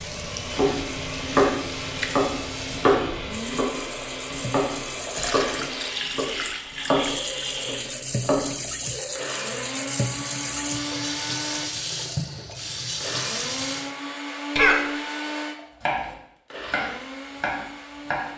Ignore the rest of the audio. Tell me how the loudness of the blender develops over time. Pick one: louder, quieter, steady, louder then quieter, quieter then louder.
steady.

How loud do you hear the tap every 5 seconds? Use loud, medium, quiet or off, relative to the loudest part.
medium, loud, loud, off.